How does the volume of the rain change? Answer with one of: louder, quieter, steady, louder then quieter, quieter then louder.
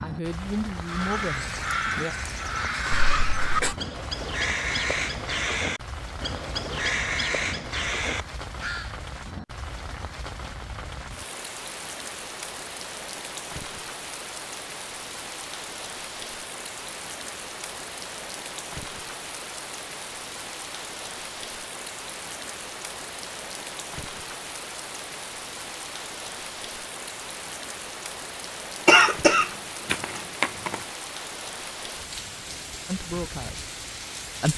steady.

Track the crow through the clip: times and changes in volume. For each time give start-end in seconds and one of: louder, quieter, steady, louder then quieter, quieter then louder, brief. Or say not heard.
0.8-8.9 steady.